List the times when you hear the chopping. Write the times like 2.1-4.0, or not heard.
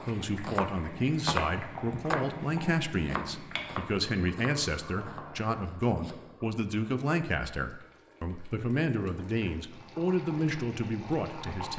0.0-2.4, 3.0-6.2.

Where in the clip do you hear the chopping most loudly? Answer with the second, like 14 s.
1 s.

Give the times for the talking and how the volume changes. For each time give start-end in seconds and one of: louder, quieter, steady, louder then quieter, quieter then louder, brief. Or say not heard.
0.0-11.7 steady.